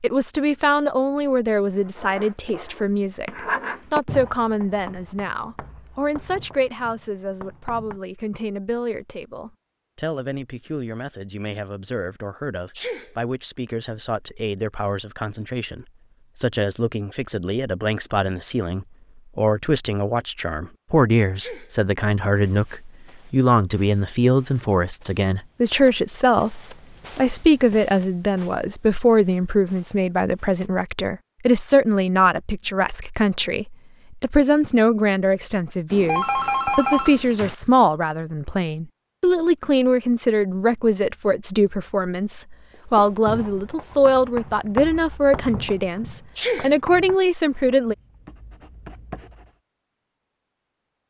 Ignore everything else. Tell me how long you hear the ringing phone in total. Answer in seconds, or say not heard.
2 s.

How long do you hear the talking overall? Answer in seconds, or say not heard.
48 s.